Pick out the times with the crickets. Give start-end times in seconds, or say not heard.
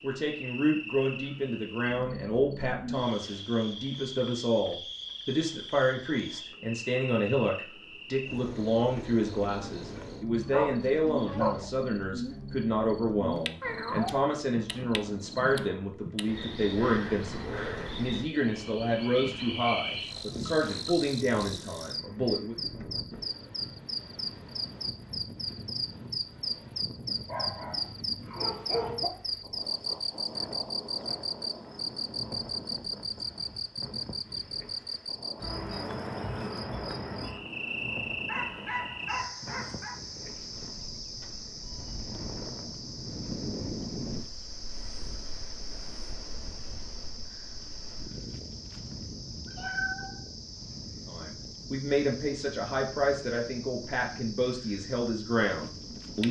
0.0-56.2.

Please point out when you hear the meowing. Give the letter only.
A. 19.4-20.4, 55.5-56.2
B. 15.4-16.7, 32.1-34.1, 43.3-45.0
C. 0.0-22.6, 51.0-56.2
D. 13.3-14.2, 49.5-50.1
D.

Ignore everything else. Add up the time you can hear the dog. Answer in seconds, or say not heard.
5 s.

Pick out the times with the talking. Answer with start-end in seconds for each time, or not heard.
0.0-22.6, 51.0-56.2.